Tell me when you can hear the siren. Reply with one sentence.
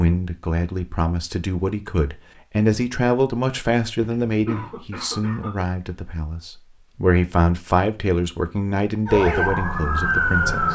The siren can be heard from 9.1 to 10.7 s.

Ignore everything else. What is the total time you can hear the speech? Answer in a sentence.
You can hear the speech for 11 seconds altogether.